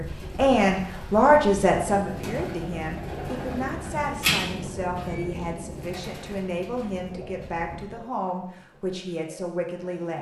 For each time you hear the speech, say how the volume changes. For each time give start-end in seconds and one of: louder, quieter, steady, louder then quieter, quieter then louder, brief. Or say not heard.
0.0-10.1 quieter.